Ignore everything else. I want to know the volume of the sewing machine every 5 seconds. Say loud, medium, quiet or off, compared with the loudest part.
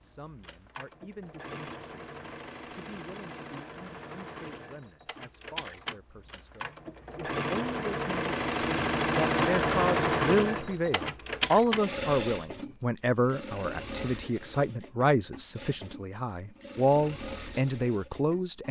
quiet, loud, loud, quiet.